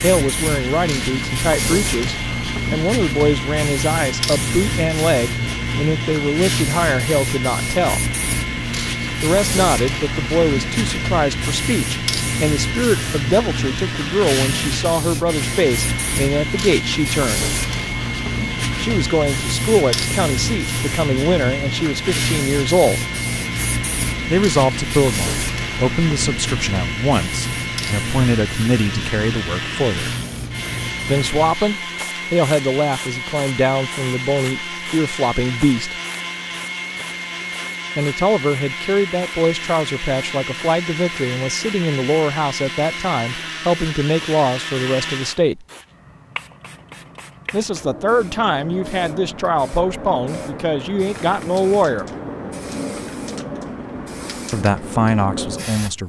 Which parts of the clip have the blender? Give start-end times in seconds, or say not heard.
0.0-45.5.